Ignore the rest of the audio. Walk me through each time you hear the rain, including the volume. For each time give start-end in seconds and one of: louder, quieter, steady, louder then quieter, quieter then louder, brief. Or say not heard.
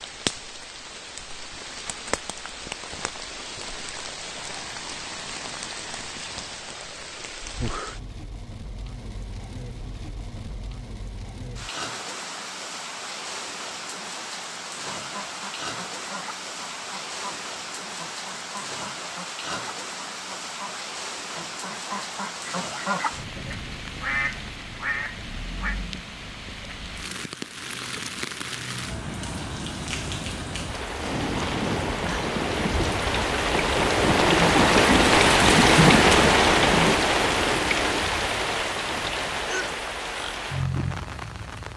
0.0-41.7 louder.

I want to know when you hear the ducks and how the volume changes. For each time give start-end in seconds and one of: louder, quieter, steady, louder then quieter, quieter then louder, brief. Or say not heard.
15.0-25.8 louder.